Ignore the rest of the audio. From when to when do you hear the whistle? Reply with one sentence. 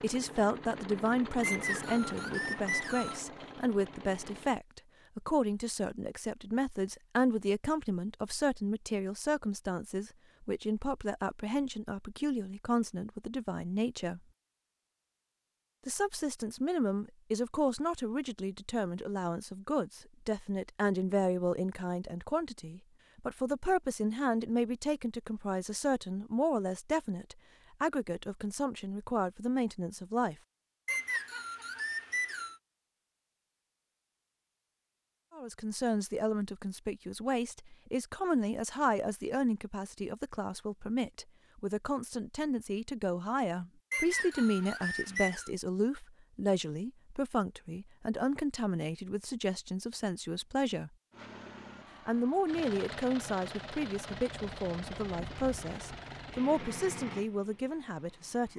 You can hear the whistle from 1.4 to 3.2 s, from 30.9 to 32.5 s and from 43.9 to 45.5 s.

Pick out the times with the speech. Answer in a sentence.
You can hear the speech from 0.0 to 14.2 s, from 15.8 to 30.4 s, from 35.3 to 50.9 s and from 52.0 to 58.5 s.